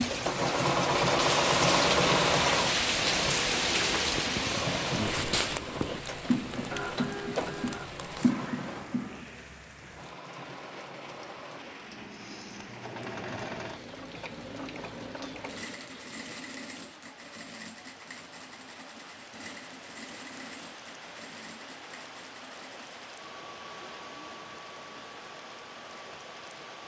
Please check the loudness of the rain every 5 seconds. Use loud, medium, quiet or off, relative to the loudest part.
loud, medium, quiet, quiet, quiet, quiet.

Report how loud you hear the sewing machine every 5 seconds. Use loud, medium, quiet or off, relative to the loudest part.
loud, medium, quiet, quiet, quiet, quiet.